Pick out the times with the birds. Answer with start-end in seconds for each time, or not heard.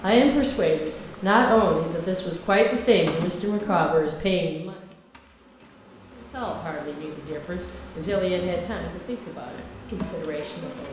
not heard.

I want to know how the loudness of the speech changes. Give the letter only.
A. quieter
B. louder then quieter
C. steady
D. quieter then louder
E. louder
A.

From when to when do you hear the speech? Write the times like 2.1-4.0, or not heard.
0.0-4.8, 6.2-10.8.